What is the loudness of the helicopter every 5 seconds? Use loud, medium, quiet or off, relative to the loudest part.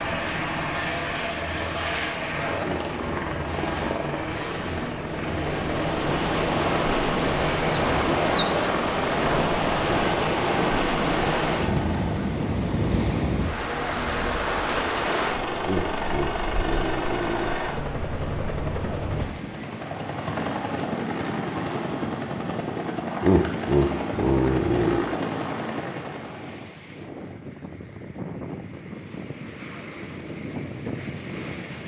loud, loud, loud, loud, loud, loud, off.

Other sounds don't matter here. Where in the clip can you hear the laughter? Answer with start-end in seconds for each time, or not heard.
2.6-3.3, 15.6-17.6, 23.2-25.1.